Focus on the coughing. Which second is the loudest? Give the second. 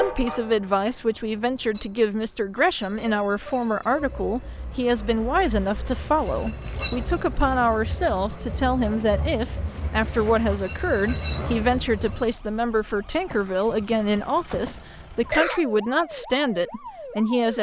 15 s.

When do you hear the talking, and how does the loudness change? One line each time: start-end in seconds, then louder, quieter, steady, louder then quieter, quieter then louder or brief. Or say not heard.
0.0-17.5 steady.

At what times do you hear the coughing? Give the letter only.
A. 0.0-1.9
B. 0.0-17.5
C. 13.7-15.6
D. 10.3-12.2
C.